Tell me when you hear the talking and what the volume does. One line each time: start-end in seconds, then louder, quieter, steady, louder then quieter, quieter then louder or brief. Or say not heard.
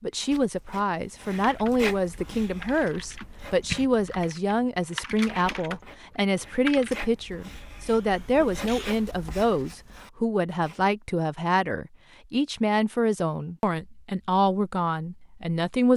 0.0-15.9 steady.